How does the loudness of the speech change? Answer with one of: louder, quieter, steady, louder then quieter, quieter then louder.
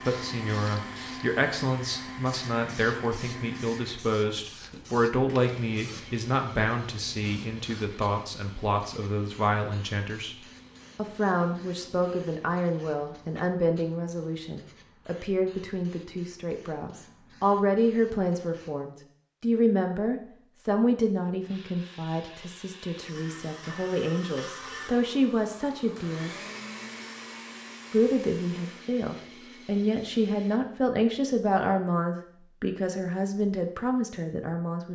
steady.